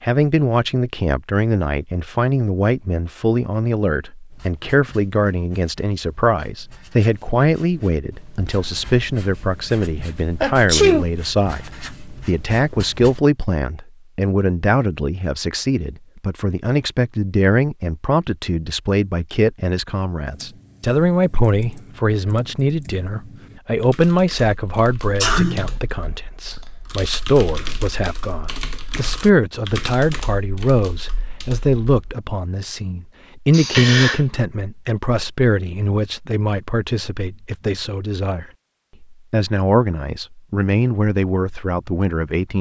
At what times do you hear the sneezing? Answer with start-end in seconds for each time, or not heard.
10.4-11.1, 25.2-25.8, 33.5-34.2.